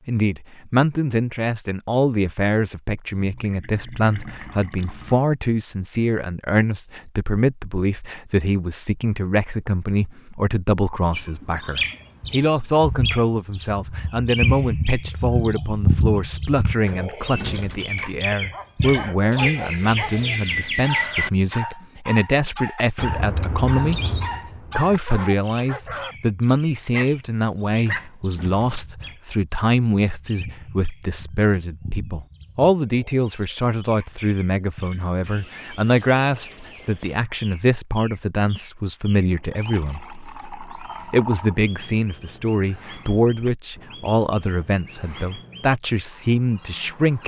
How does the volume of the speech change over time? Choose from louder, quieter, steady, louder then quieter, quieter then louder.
steady.